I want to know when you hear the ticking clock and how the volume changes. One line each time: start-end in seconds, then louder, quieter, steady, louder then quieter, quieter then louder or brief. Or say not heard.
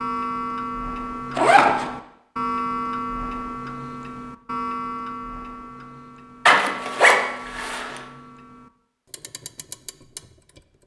0.0-10.8 quieter.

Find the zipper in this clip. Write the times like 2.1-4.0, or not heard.
1.4-1.9, 6.5-8.0.